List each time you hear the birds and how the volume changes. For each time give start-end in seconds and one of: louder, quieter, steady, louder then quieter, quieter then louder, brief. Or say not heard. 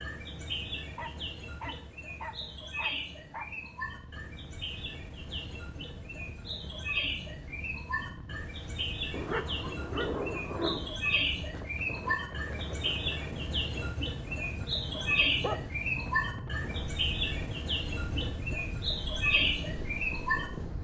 0.0-20.5 louder.